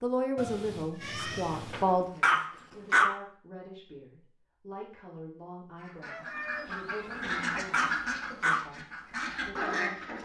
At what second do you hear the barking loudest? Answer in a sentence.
The loudest moment of the barking is at 3 seconds.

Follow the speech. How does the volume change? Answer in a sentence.
The volume of the speech goes down.